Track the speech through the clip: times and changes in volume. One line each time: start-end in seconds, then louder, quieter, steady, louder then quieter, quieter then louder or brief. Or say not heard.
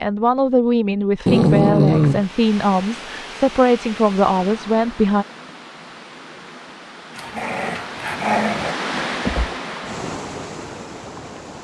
0.0-5.2 steady.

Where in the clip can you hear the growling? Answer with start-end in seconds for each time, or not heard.
1.2-2.2, 7.2-8.8.